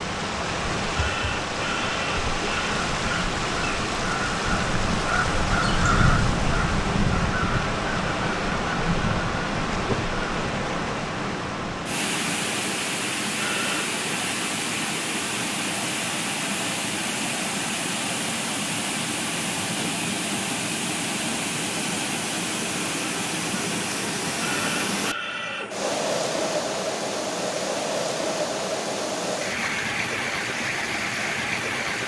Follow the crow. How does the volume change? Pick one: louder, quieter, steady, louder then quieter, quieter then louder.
louder then quieter.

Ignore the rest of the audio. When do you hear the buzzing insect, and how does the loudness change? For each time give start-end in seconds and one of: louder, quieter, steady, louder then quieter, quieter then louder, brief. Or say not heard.
not heard.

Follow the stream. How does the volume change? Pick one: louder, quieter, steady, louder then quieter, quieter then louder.
steady.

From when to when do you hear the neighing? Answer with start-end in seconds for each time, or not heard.
0.9-2.8, 13.4-13.9, 24.4-25.9.